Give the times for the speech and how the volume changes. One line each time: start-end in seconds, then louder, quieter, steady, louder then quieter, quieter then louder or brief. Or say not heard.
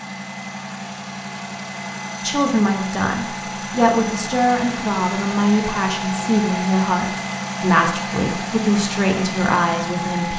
2.1-10.3 steady.